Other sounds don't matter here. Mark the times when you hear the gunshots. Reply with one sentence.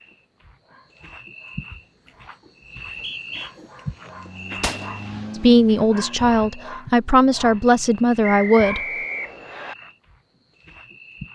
The gunshots can be heard from 4.6 to 5.2 s.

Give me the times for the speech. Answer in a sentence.
You can hear the speech from 5.4 to 8.8 s.